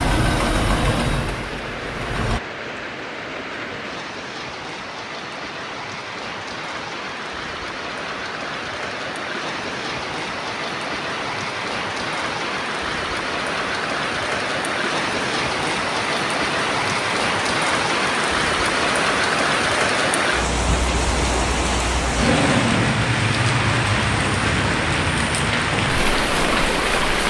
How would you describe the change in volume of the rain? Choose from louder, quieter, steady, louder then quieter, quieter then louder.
louder.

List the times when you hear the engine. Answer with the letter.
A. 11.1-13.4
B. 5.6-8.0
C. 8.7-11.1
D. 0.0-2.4
D.